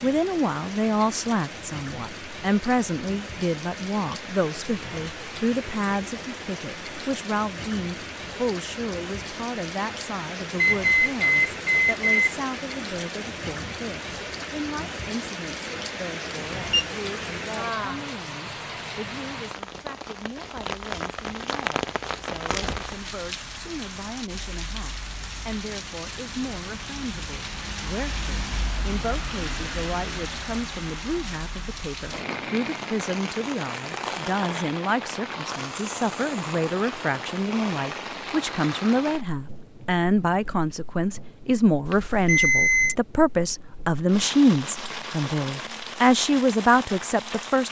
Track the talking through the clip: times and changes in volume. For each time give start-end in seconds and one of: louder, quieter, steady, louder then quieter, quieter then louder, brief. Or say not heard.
0.0-47.6 quieter then louder.